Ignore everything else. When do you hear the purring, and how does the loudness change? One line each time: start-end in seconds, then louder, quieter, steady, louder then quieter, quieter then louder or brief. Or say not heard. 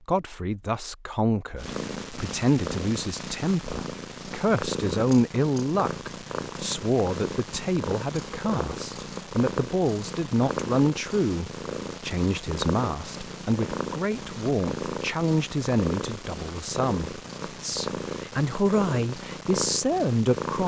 1.6-20.6 steady.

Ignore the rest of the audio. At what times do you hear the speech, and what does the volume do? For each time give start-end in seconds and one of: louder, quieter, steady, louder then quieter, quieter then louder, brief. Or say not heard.
0.1-20.6 steady.